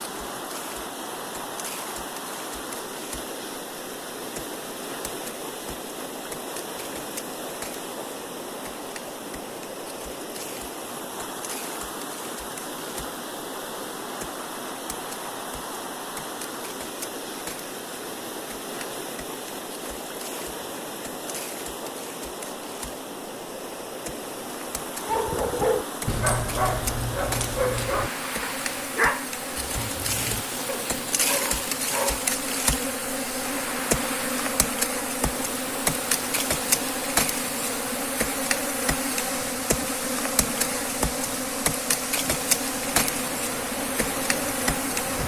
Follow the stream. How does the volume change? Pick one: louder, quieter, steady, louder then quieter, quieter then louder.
steady.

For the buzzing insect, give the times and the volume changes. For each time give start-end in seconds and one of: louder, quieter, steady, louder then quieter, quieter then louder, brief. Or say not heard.
0.0-45.2 louder.